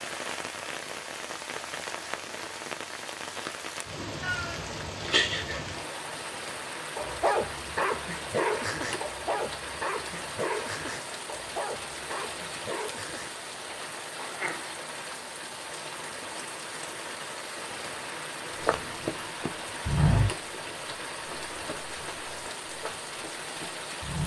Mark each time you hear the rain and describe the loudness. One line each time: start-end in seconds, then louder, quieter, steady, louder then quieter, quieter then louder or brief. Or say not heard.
0.0-24.2 steady.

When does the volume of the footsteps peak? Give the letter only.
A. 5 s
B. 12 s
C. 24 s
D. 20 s
D.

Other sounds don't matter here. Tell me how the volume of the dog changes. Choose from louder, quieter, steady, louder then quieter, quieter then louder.
quieter.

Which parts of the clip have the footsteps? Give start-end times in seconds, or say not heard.
18.6-24.2.